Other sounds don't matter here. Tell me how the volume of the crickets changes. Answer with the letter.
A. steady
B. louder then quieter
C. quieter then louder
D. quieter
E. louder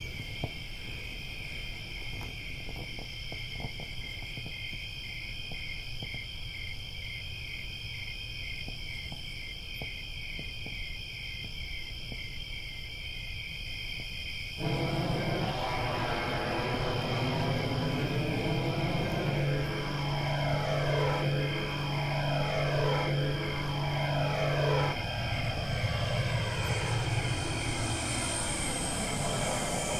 A.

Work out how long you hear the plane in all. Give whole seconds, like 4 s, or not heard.
15 s.